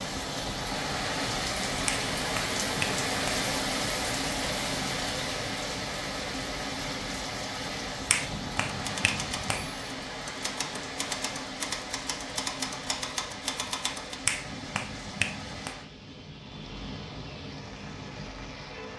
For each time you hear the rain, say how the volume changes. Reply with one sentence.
The rain can be heard from 0.0 to 18.9 s, getting quieter.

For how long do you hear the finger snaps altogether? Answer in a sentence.
The finger snaps can be heard for 5 seconds in total.